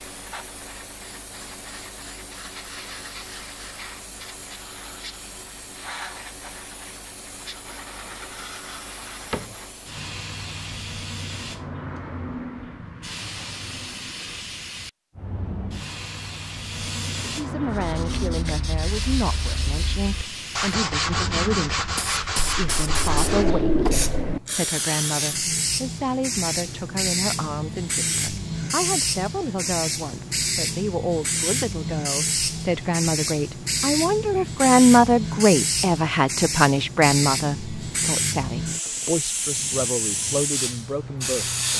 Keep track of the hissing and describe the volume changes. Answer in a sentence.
The loudness of the hissing goes up.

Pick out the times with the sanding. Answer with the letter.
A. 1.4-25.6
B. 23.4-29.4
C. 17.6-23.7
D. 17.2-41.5
C.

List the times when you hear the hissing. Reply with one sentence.
The hissing can be heard from 0.0 to 41.7 s.